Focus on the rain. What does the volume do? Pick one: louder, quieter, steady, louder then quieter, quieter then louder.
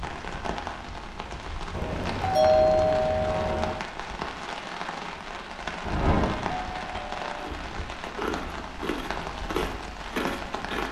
steady.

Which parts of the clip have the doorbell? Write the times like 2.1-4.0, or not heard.
1.7-3.8, 5.8-7.2.